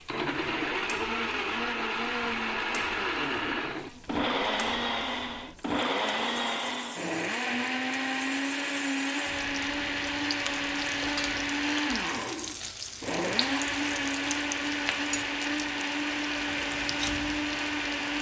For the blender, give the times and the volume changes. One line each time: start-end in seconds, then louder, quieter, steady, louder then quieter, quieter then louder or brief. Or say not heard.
0.0-18.1 steady.